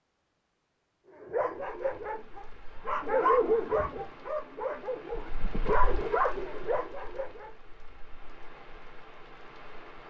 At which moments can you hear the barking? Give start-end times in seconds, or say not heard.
1.2-7.5.